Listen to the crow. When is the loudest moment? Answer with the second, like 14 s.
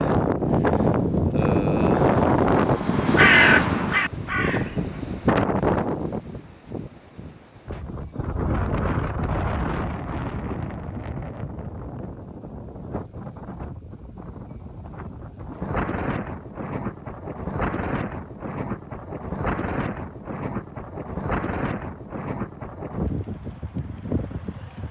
3 s.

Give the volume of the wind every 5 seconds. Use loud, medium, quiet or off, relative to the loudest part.
loud, medium, quiet, medium, medium.